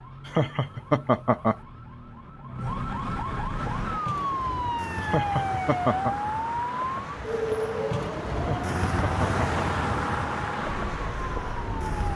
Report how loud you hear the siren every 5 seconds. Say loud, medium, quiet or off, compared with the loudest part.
loud, loud, medium.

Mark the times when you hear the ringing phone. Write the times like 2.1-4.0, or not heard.
not heard.